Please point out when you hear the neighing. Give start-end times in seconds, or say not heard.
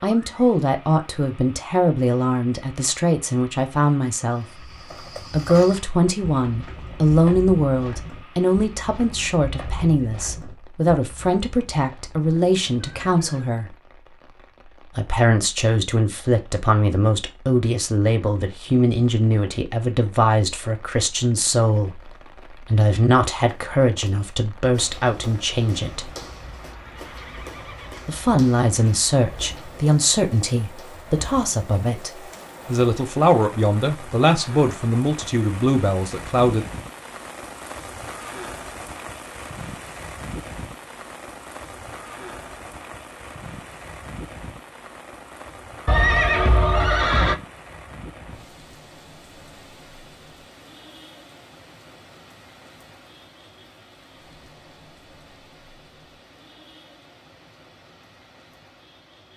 12.2-13.4, 26.6-28.1, 45.9-47.4.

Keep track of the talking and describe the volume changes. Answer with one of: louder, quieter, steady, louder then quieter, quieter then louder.
steady.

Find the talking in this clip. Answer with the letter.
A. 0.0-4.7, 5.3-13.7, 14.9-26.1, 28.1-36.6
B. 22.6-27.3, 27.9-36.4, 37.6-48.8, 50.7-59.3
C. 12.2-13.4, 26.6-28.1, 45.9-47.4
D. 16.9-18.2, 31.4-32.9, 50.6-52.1
A.